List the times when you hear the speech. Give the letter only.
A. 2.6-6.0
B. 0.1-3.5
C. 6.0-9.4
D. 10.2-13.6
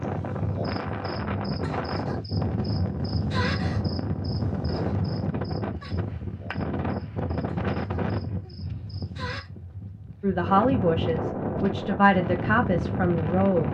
D.